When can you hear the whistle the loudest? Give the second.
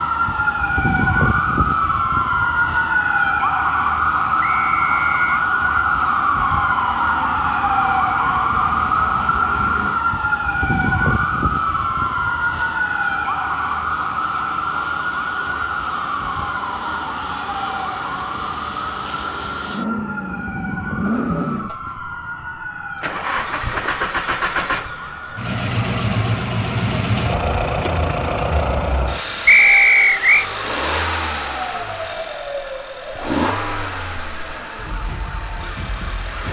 30 s.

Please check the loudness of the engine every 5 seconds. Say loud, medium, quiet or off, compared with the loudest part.
quiet, quiet, quiet, medium, loud, loud, loud, medium.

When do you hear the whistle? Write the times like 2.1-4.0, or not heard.
4.4-5.4, 29.4-30.4.